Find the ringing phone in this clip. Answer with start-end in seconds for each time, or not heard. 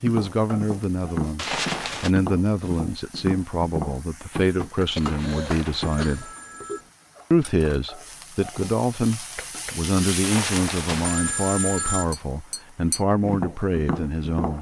1.4-2.1, 5.0-6.9, 10.2-12.2.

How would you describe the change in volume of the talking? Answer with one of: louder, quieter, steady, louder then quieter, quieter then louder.
steady.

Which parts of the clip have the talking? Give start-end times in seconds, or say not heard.
0.0-6.3, 7.3-14.5.